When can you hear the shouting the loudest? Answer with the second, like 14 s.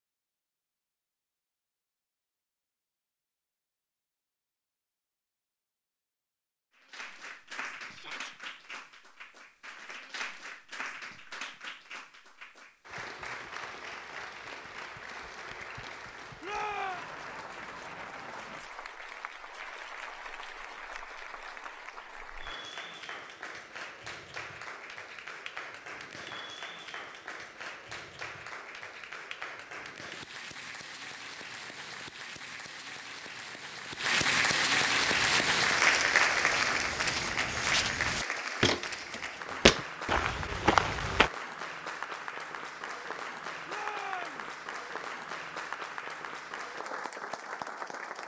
17 s.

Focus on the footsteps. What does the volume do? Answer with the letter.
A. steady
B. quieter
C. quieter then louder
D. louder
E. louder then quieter
D.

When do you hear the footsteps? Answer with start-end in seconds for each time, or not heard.
35.1-41.3.